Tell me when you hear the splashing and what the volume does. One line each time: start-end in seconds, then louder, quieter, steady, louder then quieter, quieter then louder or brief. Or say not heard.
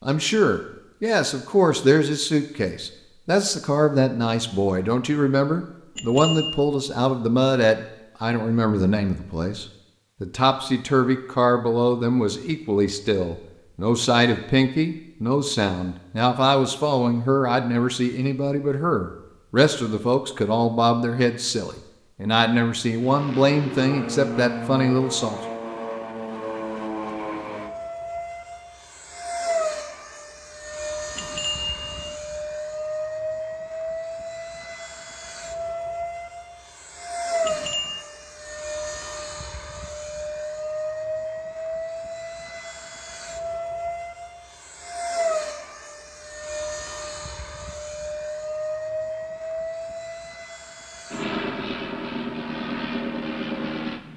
not heard.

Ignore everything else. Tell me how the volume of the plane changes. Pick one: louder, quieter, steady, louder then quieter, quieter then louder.
steady.